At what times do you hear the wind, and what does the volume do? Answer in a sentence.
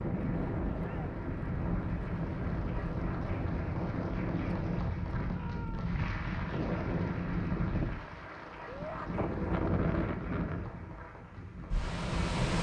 You can hear the wind from 0.0 to 12.5 s, at a steady volume.